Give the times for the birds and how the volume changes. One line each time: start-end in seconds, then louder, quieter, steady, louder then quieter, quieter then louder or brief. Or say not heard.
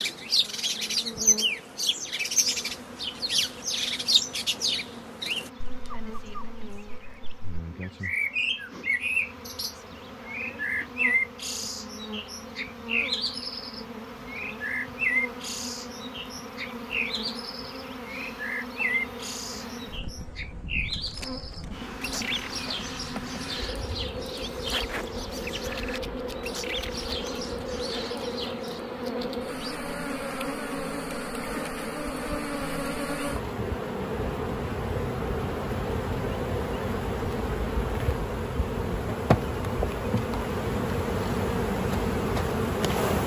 0.0-28.8 quieter.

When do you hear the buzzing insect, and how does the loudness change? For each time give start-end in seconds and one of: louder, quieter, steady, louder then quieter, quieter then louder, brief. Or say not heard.
0.2-43.2 louder.